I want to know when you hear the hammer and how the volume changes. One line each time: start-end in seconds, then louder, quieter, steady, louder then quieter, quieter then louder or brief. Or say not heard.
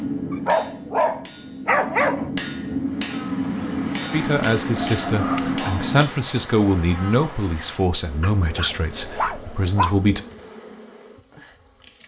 0.0-6.0 louder.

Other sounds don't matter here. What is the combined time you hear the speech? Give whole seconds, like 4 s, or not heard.
6 s.